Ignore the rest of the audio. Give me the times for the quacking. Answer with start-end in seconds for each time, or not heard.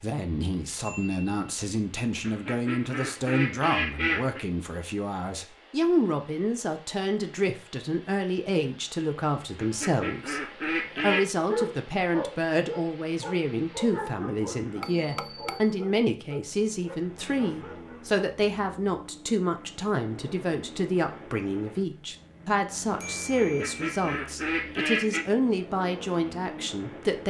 2.2-4.5, 9.6-11.2, 23.4-25.2.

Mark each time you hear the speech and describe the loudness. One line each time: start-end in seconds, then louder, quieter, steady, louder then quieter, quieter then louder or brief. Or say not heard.
0.0-27.2 steady.